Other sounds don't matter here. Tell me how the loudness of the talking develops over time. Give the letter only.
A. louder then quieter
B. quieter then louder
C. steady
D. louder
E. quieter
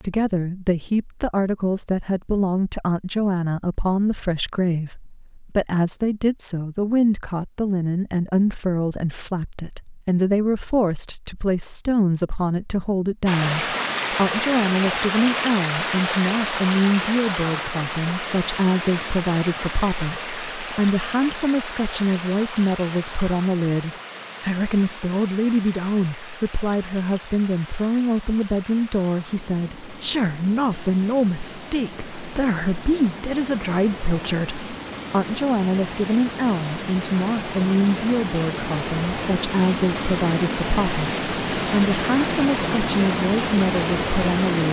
C.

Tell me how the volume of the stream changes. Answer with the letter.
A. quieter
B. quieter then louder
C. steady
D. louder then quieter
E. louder
B.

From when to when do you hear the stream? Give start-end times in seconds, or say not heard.
13.2-44.6.